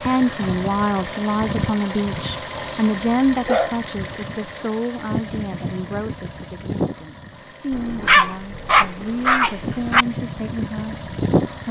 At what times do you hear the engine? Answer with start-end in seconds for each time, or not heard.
0.0-11.6.